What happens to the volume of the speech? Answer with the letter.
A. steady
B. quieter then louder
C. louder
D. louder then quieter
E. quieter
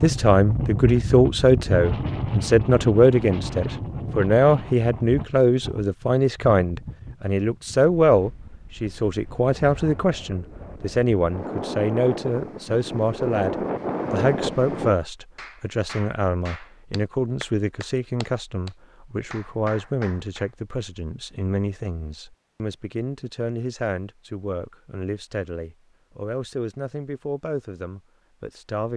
E.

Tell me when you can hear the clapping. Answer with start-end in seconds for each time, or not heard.
15.3-20.5.